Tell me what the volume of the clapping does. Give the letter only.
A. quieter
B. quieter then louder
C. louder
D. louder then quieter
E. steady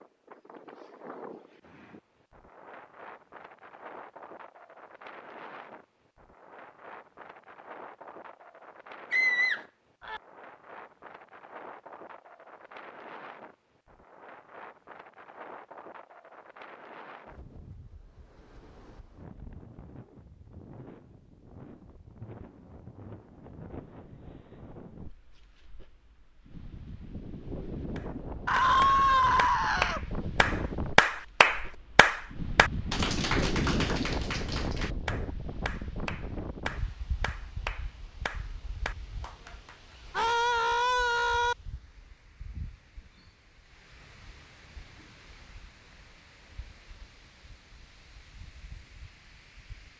D.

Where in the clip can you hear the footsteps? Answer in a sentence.
The footsteps can't be heard in this clip.